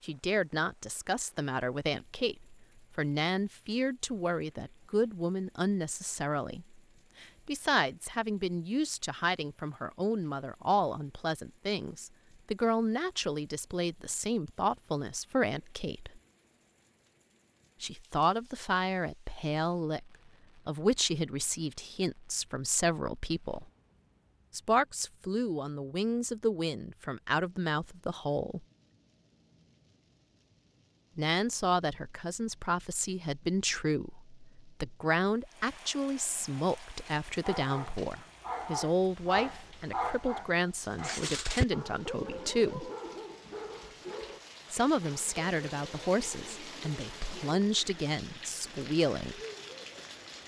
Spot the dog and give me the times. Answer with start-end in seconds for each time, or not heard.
36.7-47.6.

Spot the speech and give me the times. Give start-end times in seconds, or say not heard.
0.0-16.2, 17.8-23.6, 24.5-28.6, 31.1-42.9, 44.7-49.4.